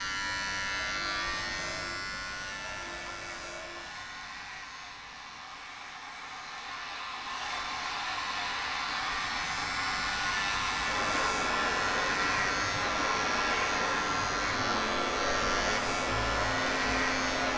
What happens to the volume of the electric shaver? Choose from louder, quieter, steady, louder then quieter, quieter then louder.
quieter then louder.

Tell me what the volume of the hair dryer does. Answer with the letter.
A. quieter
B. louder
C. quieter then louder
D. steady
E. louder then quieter
B.